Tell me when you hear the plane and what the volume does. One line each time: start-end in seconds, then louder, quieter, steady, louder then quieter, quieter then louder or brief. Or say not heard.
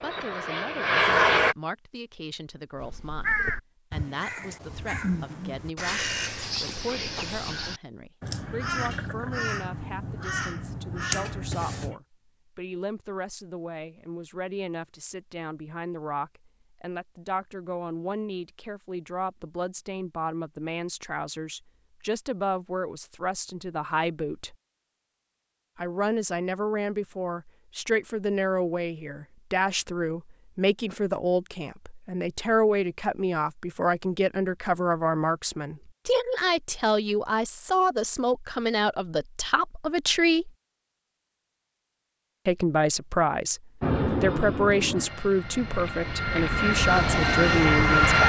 0.0-1.6 brief
43.8-48.2 quieter then louder.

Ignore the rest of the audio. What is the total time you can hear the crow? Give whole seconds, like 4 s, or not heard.
9 s.